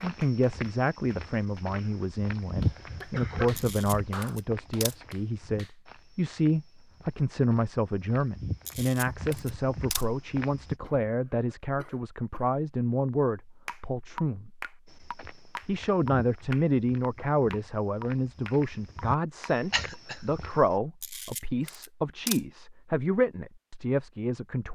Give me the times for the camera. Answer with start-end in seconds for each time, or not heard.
3.5-5.0, 8.7-10.1, 21.0-22.4.